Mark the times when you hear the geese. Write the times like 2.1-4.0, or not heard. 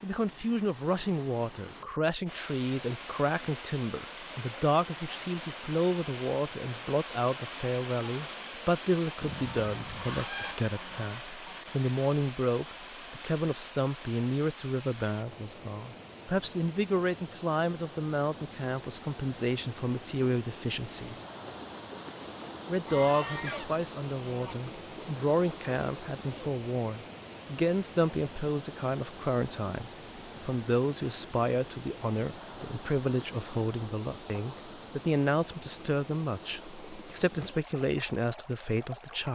9.2-11.6, 22.9-24.6.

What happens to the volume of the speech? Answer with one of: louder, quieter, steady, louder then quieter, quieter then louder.
steady.